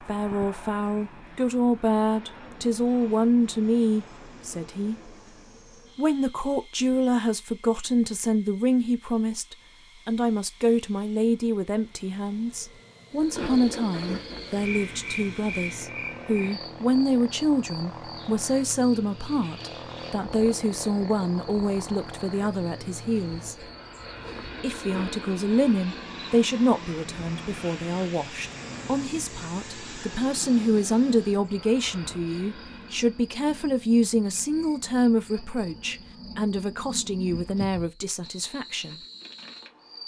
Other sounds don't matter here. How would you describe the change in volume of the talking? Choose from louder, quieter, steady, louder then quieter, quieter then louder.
steady.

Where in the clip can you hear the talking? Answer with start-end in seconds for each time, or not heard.
0.0-5.1, 6.0-23.6, 24.6-39.0.